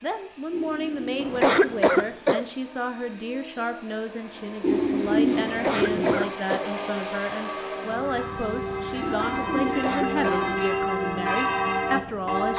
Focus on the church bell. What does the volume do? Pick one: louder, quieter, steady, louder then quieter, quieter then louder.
louder.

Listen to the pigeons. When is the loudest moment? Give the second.
5 s.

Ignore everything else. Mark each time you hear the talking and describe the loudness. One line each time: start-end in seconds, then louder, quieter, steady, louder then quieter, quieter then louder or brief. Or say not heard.
0.0-12.5 steady.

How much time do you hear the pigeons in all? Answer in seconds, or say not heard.
5 s.